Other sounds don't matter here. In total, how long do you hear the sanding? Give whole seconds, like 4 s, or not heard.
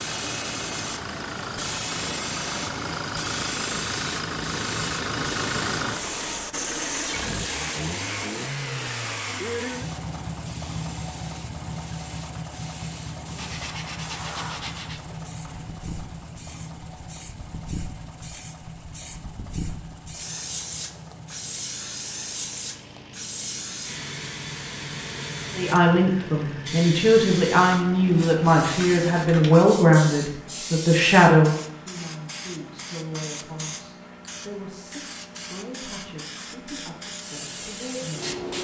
2 s.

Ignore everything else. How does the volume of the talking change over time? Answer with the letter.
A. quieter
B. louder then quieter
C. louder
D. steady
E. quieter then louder
A.